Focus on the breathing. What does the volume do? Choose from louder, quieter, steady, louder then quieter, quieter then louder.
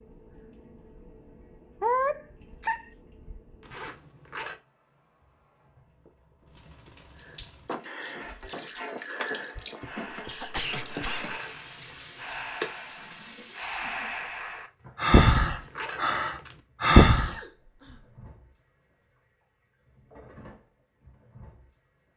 louder.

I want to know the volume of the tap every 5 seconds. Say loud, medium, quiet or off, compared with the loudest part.
quiet, loud, loud, quiet, quiet.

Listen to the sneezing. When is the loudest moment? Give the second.
2 s.